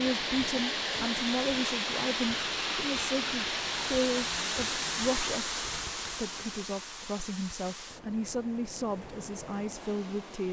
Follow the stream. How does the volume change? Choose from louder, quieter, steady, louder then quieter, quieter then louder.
quieter.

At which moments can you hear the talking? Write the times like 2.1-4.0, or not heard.
0.0-10.4.